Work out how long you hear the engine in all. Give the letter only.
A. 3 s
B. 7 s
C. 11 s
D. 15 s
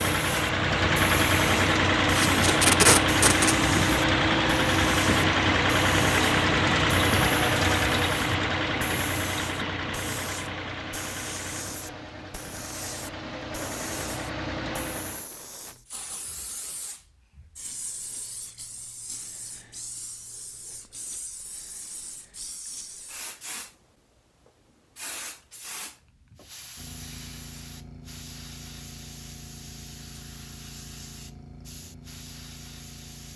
D.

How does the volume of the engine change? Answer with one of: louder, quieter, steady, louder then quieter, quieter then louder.
quieter.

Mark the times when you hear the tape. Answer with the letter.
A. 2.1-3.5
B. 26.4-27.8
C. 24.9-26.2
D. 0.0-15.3
A.